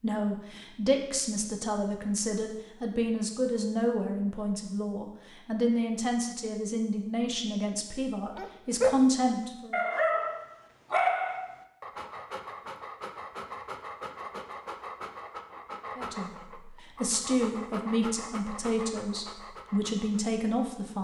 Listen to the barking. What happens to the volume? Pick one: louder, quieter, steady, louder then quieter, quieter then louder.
quieter.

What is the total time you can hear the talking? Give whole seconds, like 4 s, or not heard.
15 s.